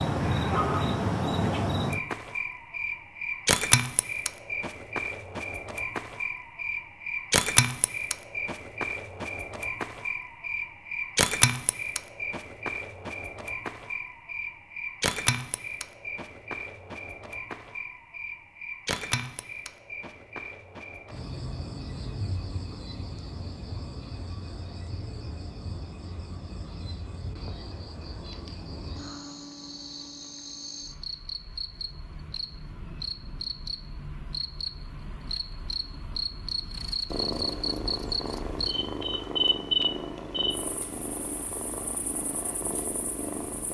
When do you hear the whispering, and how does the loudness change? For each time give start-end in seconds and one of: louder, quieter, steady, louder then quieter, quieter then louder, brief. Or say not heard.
not heard.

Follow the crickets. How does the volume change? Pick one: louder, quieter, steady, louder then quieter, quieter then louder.
quieter then louder.